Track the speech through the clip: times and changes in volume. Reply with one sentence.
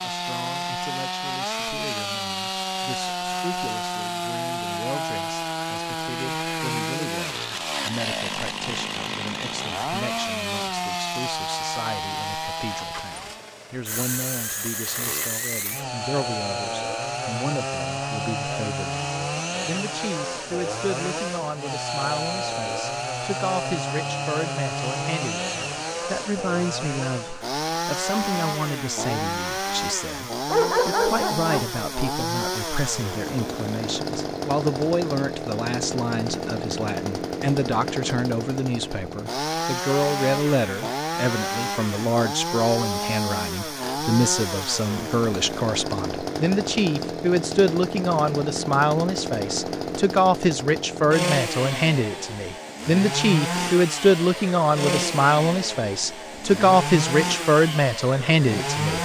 You can hear the speech from 0.0 to 58.9 s, getting louder.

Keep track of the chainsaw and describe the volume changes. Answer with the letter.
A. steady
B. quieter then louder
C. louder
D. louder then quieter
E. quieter
A.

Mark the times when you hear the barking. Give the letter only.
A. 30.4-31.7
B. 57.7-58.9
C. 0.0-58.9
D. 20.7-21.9
A.